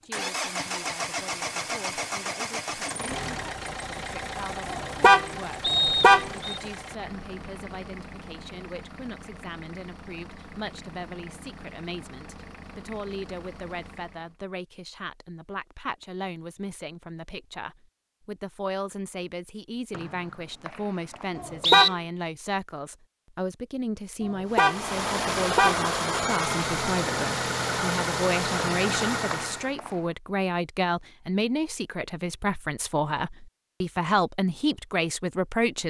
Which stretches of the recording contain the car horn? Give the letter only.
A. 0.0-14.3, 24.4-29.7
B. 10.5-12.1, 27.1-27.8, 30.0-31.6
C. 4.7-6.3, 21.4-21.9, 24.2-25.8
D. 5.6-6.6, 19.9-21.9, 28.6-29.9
C.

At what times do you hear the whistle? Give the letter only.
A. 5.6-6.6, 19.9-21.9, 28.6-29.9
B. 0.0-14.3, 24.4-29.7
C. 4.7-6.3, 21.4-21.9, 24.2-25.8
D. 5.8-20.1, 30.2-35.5
A.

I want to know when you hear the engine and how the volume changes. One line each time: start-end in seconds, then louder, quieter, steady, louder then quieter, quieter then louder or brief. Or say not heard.
0.0-14.3 quieter
24.4-29.7 steady.